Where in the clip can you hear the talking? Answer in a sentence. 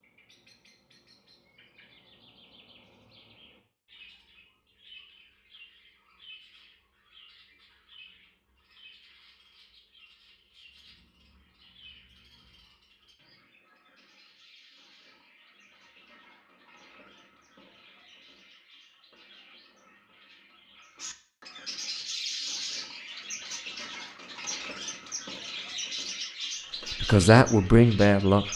The talking can be heard from 27.0 to 28.5 s.